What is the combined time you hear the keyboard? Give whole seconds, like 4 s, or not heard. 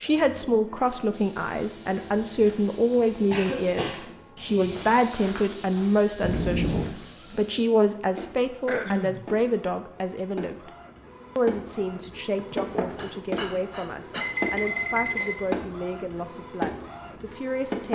not heard.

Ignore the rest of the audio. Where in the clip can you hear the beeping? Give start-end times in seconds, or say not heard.
6.2-6.9, 14.2-15.3.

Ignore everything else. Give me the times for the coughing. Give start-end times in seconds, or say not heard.
3.3-4.0, 8.7-9.3, 12.3-14.3.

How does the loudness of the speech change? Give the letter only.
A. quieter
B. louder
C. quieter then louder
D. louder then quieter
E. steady
A.